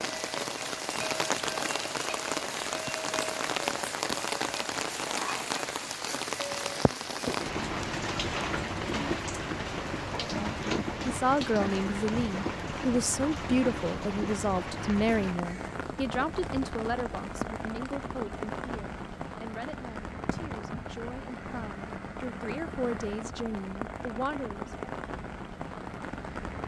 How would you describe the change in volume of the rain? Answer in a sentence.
The volume of the rain goes down.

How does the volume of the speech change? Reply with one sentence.
The volume of the speech goes down, then up.